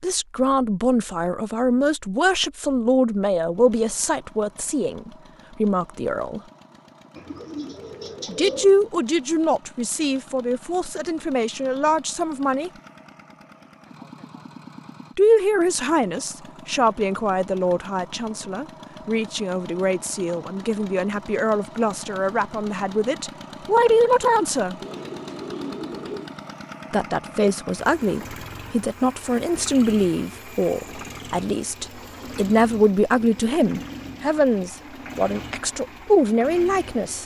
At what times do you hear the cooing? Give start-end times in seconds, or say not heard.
7.2-8.7, 24.8-26.4.